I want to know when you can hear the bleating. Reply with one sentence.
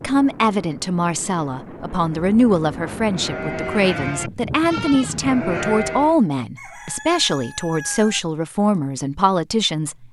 You can hear the bleating from 3.0 to 6.2 s.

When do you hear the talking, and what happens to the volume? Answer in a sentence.
You can hear the talking from 0.0 to 10.0 s, at a steady volume.